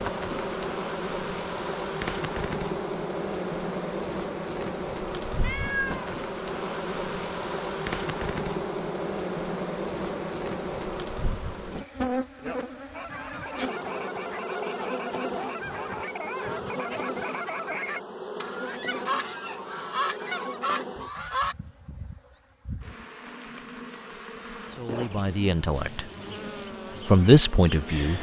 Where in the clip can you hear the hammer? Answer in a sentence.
You can't hear the hammer here.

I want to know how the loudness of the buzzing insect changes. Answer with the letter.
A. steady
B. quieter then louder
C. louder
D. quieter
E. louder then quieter
D.